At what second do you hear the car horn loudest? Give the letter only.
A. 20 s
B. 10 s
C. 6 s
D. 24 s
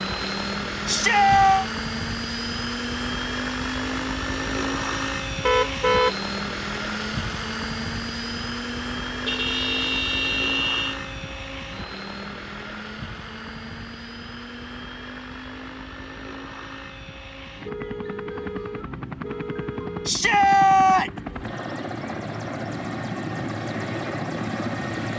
C.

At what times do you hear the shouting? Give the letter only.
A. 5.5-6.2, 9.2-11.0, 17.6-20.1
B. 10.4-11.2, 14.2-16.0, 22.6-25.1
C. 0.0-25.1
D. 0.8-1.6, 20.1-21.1
D.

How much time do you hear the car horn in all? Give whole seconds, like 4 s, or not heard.
5 s.